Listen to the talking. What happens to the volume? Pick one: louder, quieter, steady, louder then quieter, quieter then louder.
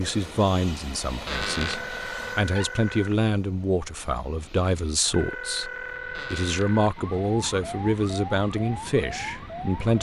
steady.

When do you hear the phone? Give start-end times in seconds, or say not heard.
1.4-3.1, 5.1-7.0.